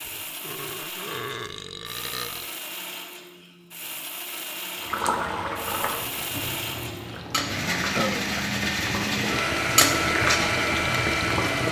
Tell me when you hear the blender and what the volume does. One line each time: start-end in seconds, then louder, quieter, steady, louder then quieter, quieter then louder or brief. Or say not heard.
0.0-11.6 louder.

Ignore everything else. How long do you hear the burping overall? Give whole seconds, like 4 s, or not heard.
3 s.